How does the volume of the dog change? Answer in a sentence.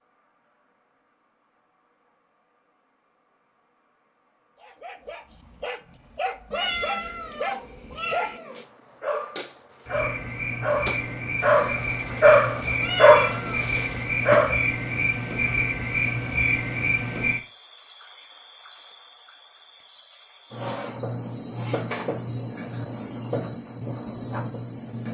The volume of the dog goes up.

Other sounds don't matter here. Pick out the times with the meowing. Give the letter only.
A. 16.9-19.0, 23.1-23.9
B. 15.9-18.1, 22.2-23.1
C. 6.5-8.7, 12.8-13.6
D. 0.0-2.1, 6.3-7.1
C.